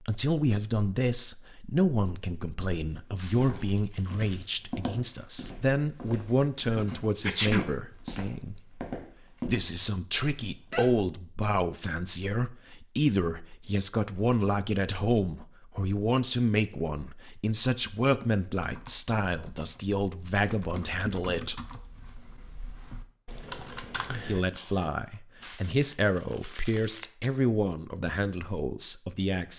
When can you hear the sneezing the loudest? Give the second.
7 s.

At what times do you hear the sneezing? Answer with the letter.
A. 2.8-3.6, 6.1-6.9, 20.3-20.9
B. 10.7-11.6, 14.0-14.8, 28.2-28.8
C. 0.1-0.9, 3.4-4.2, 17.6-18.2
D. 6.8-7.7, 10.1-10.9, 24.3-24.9
D.